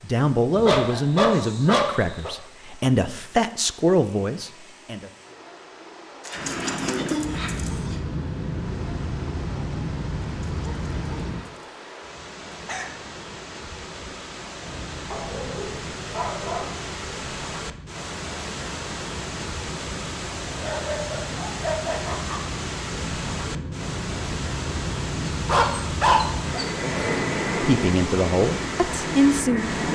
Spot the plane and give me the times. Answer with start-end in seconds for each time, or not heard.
6.3-11.4, 14.6-29.9.